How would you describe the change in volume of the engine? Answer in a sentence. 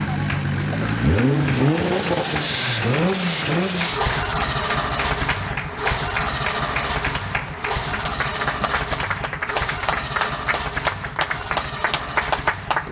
The loudness of the engine goes down.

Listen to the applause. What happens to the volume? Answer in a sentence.
The loudness of the applause goes up.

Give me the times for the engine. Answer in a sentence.
The engine can be heard from 0.0 to 12.8 s.